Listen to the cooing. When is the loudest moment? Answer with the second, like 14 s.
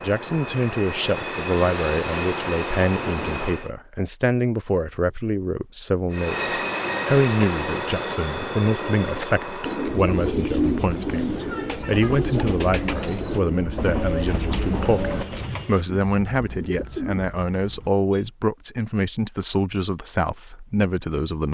11 s.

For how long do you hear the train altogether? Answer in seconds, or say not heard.
13 s.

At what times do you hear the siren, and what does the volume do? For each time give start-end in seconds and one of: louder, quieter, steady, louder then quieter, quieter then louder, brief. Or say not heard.
not heard.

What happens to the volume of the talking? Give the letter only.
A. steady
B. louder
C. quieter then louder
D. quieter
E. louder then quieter
A.